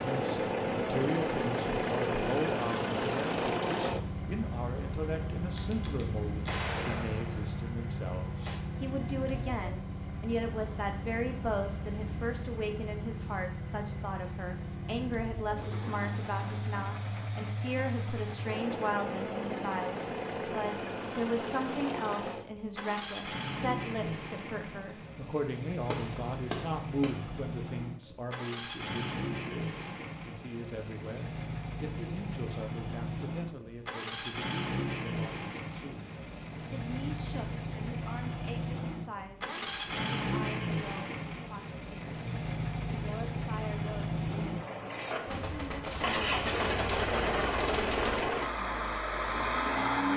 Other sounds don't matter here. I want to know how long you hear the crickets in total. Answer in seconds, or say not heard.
not heard.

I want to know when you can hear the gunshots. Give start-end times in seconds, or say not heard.
5.5-8.6, 25.9-27.2, 45.2-48.4.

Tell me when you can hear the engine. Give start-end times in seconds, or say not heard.
0.0-50.1.